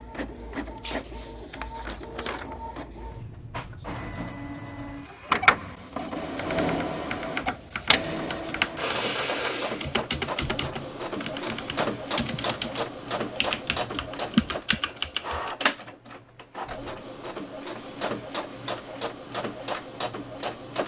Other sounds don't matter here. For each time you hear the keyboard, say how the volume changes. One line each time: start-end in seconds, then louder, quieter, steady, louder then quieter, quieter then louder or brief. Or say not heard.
6.3-15.6 louder.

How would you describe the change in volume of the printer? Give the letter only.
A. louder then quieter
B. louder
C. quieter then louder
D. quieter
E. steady
A.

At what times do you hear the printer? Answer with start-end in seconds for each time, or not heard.
0.0-20.8.